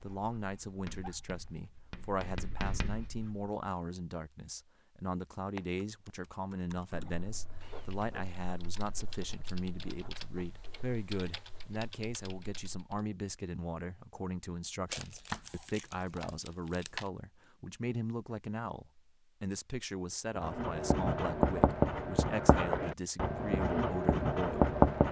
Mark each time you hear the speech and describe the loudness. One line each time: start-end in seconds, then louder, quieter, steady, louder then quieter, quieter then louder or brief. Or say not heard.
0.0-25.0 steady.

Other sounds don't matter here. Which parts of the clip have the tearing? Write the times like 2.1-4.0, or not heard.
14.9-17.1.